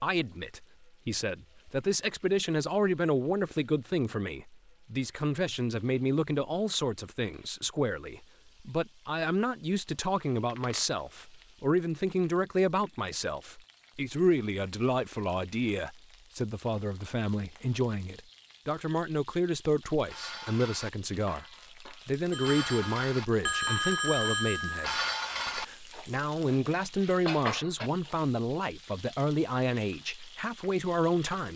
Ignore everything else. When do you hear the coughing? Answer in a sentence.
You can't hear the coughing here.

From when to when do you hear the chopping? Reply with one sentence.
The chopping can't be heard in this clip.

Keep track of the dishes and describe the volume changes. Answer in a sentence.
The loudness of the dishes goes up.